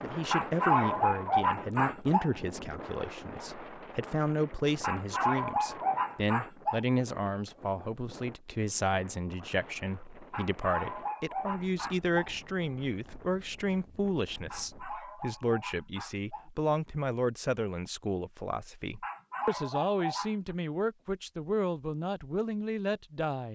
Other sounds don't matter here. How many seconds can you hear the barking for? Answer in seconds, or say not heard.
10 s.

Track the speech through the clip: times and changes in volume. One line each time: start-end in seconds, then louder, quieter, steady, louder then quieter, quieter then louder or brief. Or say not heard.
0.0-23.4 steady.